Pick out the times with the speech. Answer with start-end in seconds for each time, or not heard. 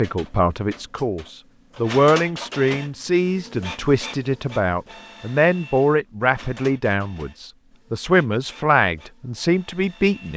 0.0-10.3.